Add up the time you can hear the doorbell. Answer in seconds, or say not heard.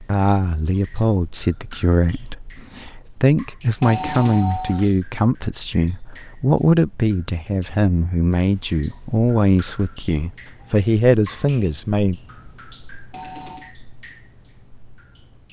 2 s.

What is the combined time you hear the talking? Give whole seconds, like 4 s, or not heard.
12 s.